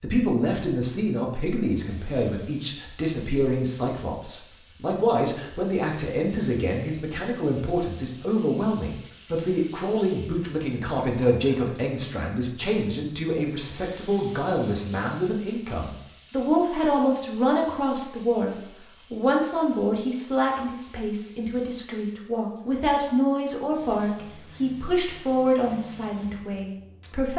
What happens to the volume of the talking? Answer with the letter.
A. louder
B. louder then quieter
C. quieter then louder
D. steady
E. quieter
D.